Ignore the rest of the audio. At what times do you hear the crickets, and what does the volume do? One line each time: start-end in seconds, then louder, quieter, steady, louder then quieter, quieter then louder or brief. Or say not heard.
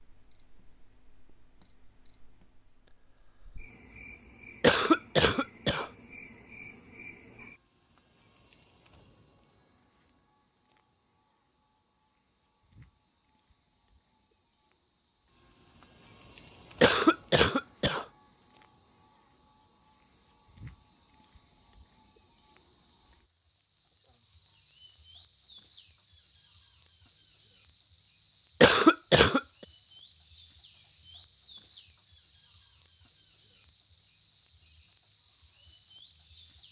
0.0-36.6 louder.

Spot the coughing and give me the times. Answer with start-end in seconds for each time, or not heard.
4.6-5.8, 16.8-18.1, 28.6-29.4.